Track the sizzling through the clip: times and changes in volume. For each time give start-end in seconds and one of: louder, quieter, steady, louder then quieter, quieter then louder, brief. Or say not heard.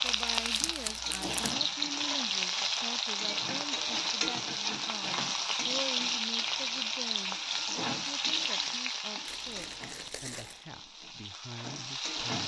0.0-12.4 quieter.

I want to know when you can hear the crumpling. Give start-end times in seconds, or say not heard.
0.1-1.4, 9.2-10.7.